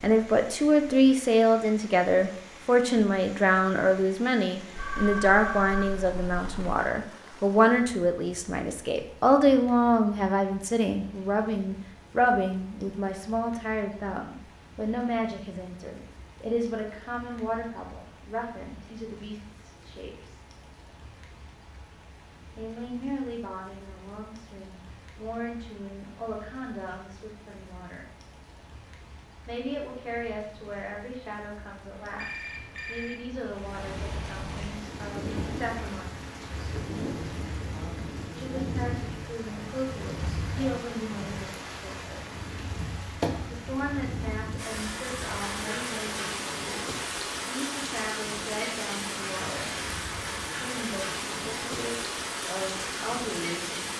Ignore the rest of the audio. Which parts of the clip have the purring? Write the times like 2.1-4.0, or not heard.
not heard.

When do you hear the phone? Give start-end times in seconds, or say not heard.
4.8-6.8, 32.0-33.2.